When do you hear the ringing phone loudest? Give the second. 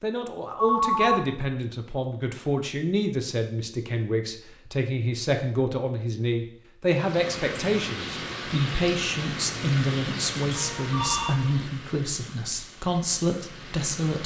1 s.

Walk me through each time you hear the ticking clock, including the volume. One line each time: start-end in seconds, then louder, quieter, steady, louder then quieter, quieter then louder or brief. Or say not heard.
not heard.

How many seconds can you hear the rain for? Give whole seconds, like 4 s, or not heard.
7 s.